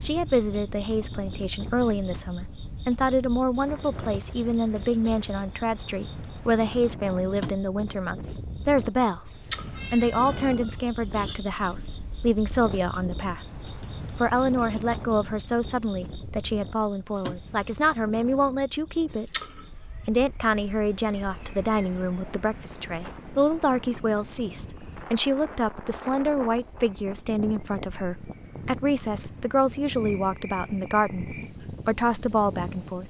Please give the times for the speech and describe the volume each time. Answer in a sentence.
The speech can be heard from 0.0 to 9.3 s, at a steady volume; and from 9.9 to 33.0 s, at a steady volume.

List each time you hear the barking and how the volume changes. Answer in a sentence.
The barking can't be heard in this clip.